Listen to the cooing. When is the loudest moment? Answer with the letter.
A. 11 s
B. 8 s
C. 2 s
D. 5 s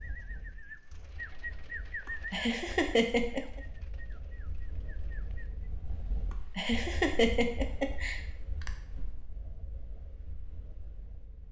C.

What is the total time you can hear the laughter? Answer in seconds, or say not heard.
4 s.